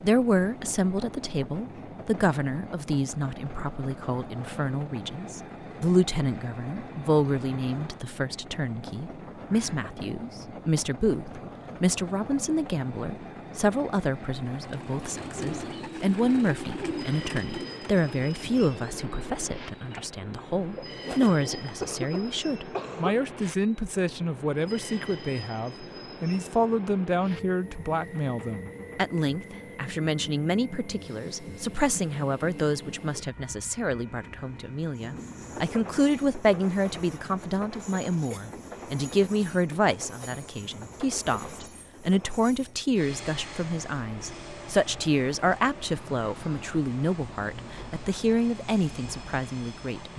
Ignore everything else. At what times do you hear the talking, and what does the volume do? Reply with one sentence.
The talking can be heard from 0.0 to 50.1 s, at a steady volume.